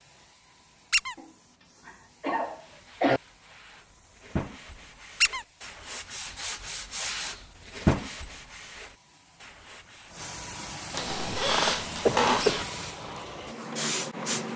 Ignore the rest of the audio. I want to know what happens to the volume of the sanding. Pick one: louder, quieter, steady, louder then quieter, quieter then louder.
louder then quieter.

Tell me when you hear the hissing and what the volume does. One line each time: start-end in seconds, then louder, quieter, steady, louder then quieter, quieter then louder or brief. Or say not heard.
0.0-14.5 louder.